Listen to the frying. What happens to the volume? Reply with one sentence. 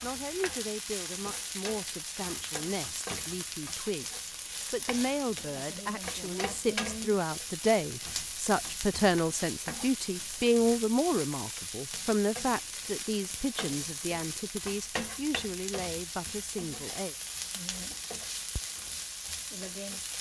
The volume of the frying stays about the same.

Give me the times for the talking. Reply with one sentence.
The talking can be heard from 0.0 to 17.1 s.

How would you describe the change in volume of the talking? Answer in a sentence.
The loudness of the talking goes up, then down.